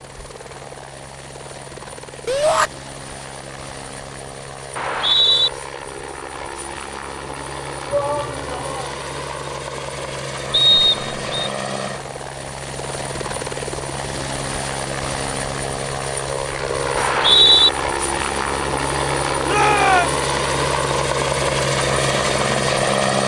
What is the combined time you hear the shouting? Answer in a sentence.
You can hear the shouting for 2 seconds altogether.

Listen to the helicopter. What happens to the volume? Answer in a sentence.
The loudness of the helicopter goes up.